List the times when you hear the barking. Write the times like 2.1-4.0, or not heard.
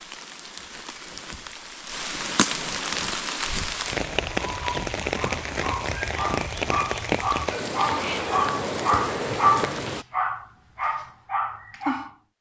4.5-12.2.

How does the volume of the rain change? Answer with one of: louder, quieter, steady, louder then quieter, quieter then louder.
louder.